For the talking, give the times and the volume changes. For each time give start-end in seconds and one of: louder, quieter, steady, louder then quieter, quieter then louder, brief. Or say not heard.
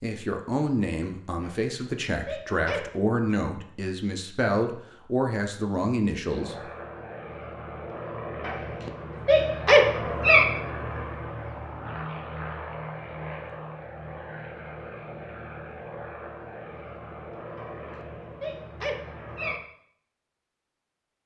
0.0-6.5 steady.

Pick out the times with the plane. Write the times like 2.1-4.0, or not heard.
6.2-19.6.